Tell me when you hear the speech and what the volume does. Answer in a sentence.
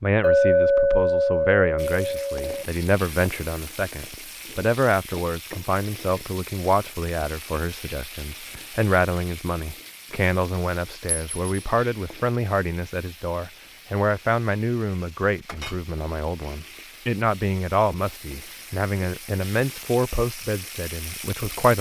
The speech can be heard from 0.0 to 21.7 s, at a steady volume.